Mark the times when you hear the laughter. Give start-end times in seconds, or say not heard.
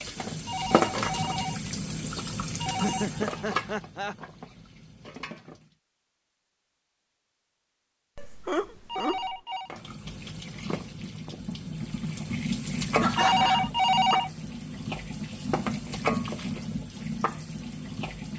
2.5-4.2, 8.2-9.4, 13.0-13.7.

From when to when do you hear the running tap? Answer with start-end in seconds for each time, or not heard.
0.0-5.8, 9.7-18.3.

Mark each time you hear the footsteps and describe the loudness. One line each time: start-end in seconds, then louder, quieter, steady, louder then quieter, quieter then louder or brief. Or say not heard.
not heard.